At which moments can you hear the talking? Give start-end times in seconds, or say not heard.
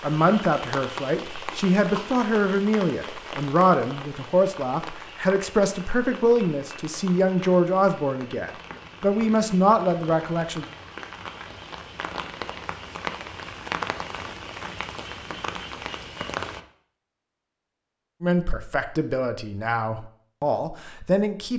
0.0-10.7, 18.2-21.5.